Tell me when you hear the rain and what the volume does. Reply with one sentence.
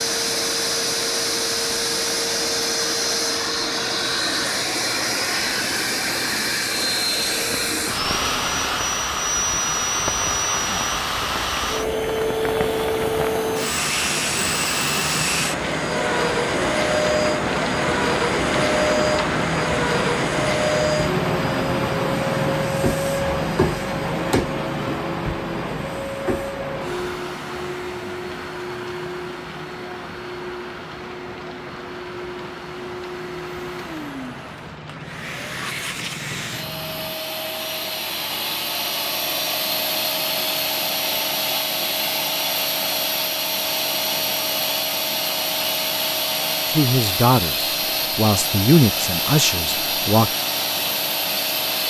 You can hear the rain from 0.0 to 37.2 s, getting louder then quieter.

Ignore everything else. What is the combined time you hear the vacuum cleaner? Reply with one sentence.
The vacuum cleaner can be heard for 52 seconds in total.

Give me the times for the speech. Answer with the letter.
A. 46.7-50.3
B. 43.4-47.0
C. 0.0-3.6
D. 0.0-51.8
A.